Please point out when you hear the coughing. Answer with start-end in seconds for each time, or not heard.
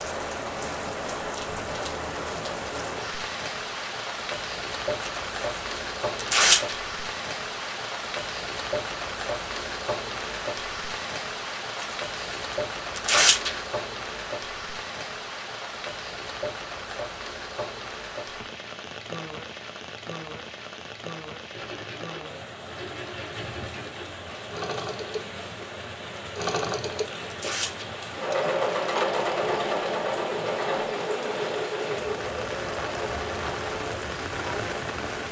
not heard.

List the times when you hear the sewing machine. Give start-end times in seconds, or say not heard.
21.5-35.0.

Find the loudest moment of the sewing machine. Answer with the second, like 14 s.
29 s.